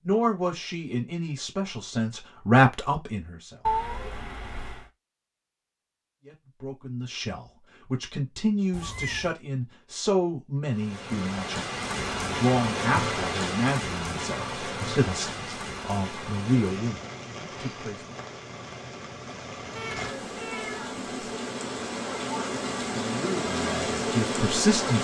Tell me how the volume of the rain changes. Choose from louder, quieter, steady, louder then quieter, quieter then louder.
quieter then louder.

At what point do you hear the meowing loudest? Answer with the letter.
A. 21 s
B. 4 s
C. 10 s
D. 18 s
B.